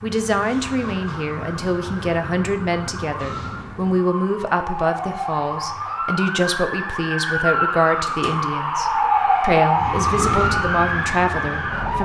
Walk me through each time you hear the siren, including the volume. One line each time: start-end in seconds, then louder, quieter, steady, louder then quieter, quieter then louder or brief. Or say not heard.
0.0-12.0 louder.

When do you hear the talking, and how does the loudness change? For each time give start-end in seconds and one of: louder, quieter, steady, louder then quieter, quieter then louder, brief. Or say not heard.
0.0-12.0 steady.